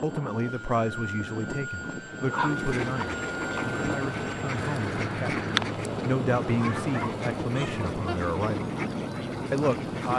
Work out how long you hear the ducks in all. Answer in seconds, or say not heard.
8 s.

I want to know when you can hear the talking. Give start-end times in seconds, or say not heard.
0.0-8.7, 9.5-10.1.